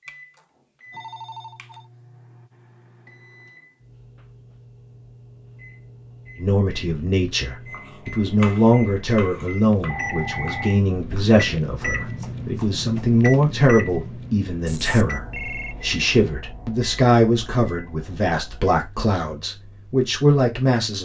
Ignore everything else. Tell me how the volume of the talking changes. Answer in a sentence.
The volume of the talking stays about the same.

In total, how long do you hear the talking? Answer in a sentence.
You can hear the talking for 15 seconds altogether.